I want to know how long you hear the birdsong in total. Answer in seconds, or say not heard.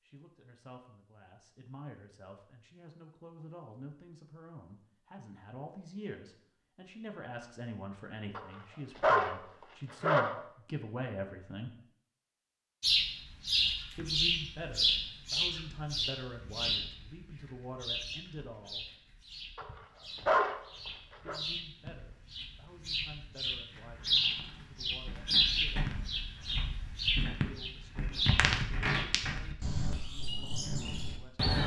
19 s.